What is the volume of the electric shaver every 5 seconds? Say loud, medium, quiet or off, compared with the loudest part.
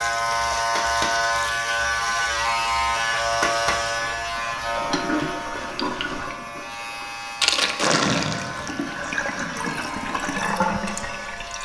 loud, medium, medium.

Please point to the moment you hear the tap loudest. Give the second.
8 s.